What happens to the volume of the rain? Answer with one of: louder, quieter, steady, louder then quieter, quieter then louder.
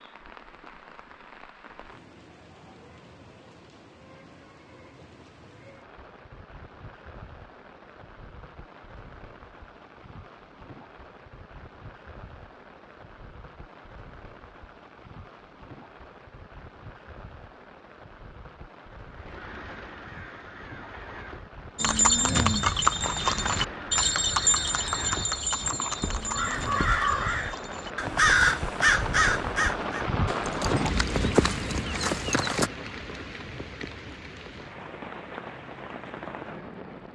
louder.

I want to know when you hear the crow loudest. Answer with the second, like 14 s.
28 s.